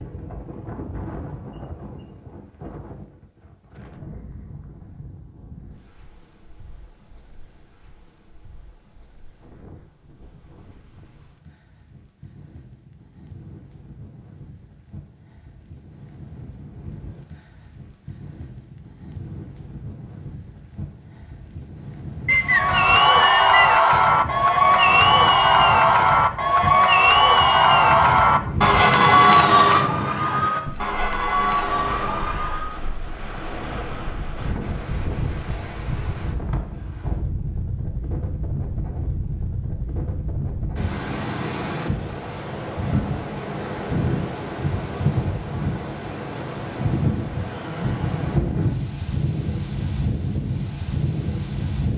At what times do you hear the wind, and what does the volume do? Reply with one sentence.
The wind can be heard from 0.0 to 51.9 s, getting louder.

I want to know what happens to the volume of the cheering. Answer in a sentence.
The volume of the cheering goes down.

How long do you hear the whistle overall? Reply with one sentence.
You can hear the whistle for 2 seconds altogether.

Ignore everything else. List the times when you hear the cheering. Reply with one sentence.
The cheering can be heard from 22.4 to 32.8 s.